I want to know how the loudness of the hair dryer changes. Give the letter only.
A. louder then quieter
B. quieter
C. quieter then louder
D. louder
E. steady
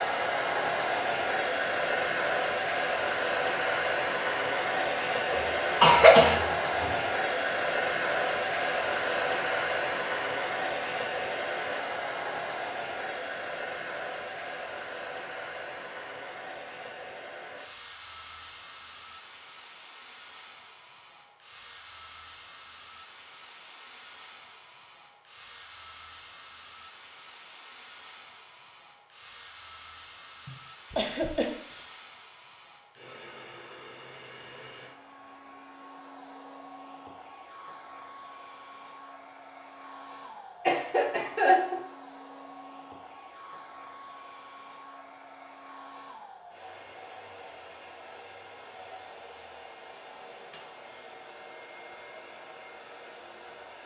B.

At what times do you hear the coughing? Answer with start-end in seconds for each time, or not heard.
5.3-6.9, 30.4-31.9, 40.6-41.9.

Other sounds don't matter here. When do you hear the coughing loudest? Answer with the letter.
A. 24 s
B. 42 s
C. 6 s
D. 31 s
C.